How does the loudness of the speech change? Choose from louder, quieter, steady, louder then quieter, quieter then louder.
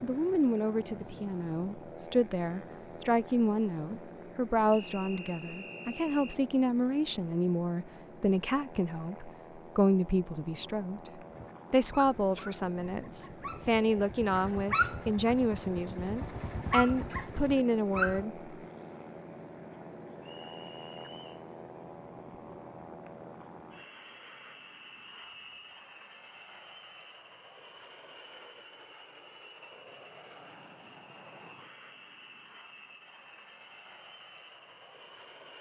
steady.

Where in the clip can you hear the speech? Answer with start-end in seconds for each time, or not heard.
0.0-11.0, 11.7-18.4.